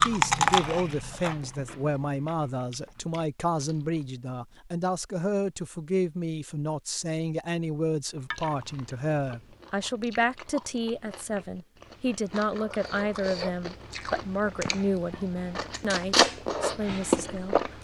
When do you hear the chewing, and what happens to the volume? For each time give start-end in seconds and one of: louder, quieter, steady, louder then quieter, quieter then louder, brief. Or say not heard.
0.0-4.0 quieter
8.2-17.7 louder.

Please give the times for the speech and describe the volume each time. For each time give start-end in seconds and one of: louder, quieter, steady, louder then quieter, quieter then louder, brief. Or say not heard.
0.0-17.7 steady.